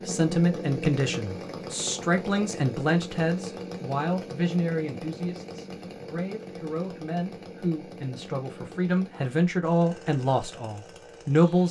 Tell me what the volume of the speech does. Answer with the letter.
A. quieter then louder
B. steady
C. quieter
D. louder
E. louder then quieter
A.